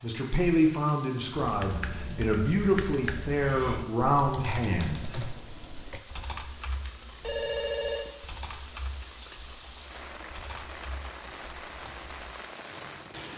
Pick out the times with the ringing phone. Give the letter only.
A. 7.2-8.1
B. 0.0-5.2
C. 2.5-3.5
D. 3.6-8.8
A.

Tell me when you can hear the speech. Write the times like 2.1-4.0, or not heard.
0.0-5.2.